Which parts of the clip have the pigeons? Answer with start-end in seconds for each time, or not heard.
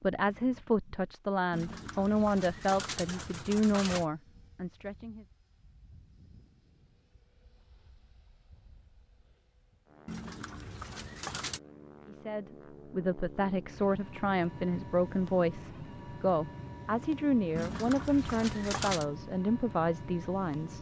1.5-4.0, 10.1-11.6, 17.6-19.1.